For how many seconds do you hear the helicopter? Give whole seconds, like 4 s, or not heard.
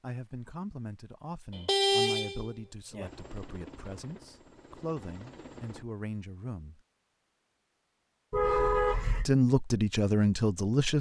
3 s.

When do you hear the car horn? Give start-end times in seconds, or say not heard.
1.5-3.1, 8.3-9.2.